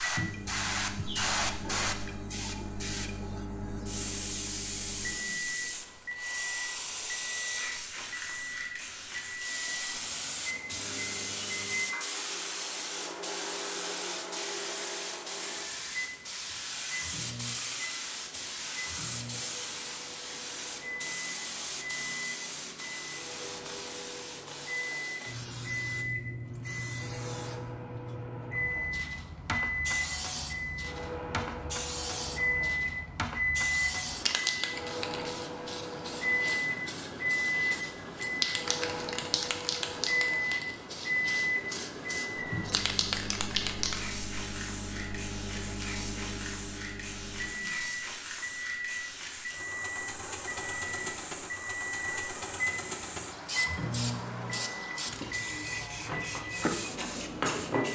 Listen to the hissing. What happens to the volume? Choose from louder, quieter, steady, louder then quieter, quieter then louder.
steady.